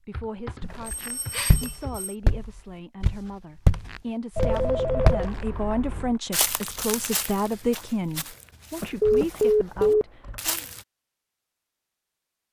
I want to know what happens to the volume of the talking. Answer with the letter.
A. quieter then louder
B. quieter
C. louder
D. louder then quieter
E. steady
D.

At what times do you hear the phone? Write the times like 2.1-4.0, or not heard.
0.7-2.1, 4.3-5.3, 9.0-10.1.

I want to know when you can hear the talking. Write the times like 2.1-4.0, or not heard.
0.0-10.7.